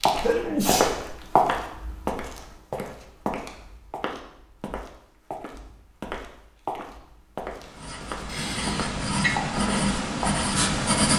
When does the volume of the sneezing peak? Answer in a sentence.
The loudest moment of the sneezing is at 1 second.